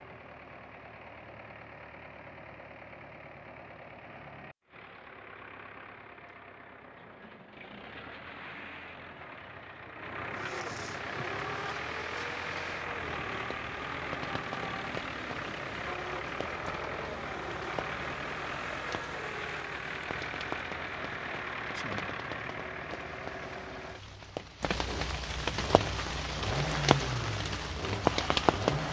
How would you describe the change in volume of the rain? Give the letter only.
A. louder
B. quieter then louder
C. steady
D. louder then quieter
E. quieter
A.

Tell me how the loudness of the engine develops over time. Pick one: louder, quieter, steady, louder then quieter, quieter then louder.
louder.